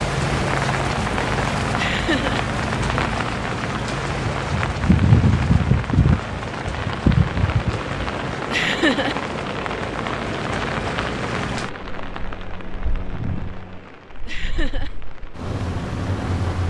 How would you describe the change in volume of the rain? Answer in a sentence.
The loudness of the rain goes up, then down.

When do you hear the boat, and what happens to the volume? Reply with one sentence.
You can hear the boat from 0.0 to 16.6 s, getting quieter.